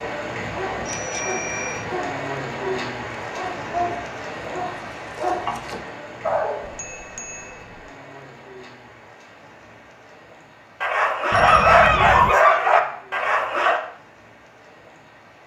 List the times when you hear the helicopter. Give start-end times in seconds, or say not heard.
not heard.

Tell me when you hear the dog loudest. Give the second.
12 s.